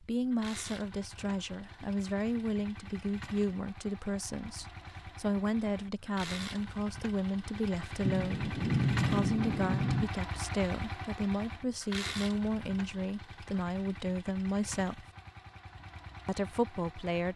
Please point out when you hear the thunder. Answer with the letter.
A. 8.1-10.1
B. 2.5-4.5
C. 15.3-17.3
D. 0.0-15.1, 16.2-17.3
A.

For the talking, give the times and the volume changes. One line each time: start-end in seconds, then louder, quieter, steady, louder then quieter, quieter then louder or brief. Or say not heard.
0.0-15.1 steady
16.2-17.3 brief.